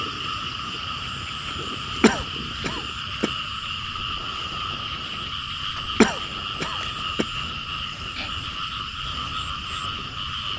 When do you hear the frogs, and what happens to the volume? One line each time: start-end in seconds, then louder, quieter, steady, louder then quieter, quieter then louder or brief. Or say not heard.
0.0-10.5 steady.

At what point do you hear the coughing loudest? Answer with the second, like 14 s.
6 s.